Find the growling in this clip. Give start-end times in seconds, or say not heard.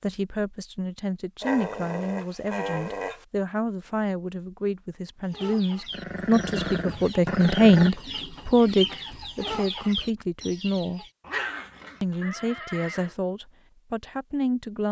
1.4-3.2, 5.9-7.9, 11.2-12.2.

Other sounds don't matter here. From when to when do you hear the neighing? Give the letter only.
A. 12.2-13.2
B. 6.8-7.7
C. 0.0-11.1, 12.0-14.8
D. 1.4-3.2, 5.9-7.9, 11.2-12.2
A.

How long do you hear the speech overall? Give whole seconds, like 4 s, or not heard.
14 s.